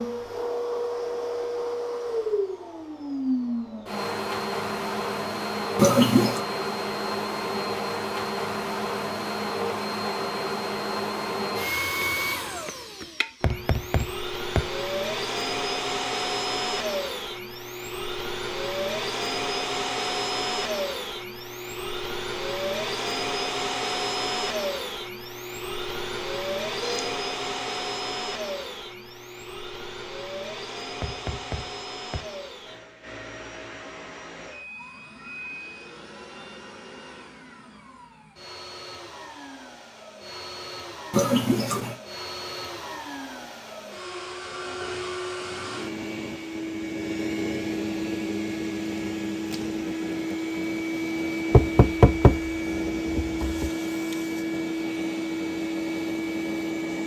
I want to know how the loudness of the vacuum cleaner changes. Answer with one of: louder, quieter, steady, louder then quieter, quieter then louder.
quieter then louder.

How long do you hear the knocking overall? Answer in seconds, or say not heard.
5 s.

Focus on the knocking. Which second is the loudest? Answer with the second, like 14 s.
52 s.